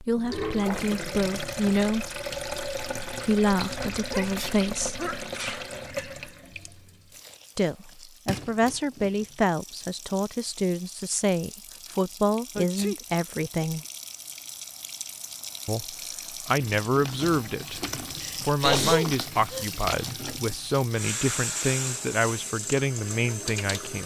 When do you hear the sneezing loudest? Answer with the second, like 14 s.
19 s.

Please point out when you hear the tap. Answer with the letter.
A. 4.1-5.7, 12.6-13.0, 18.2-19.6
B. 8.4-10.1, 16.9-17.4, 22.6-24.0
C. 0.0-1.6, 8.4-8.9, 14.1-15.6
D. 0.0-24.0
D.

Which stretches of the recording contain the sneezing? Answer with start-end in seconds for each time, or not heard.
4.1-5.7, 12.6-13.0, 18.2-19.6.